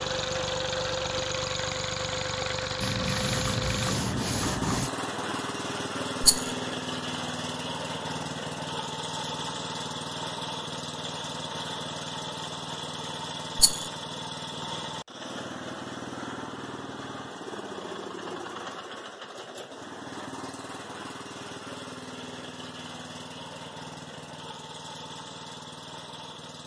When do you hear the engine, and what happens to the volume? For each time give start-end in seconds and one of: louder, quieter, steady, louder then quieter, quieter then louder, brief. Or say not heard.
0.0-26.6 quieter.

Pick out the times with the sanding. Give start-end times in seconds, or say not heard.
2.8-4.9.